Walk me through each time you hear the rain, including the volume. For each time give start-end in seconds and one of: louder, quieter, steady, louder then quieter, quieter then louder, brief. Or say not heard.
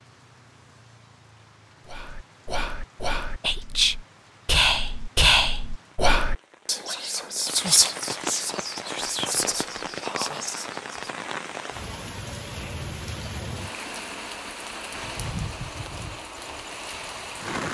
0.0-17.7 louder.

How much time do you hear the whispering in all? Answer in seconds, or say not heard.
9 s.